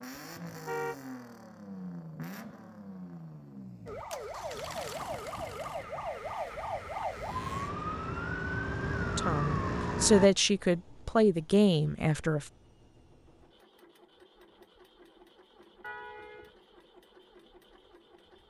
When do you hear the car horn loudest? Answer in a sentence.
The volume of the car horn peaks at 1 second.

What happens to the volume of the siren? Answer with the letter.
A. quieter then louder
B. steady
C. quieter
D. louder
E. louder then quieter
D.